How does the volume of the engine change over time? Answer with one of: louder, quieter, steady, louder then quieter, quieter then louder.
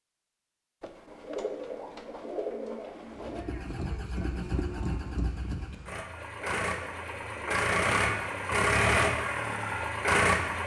louder.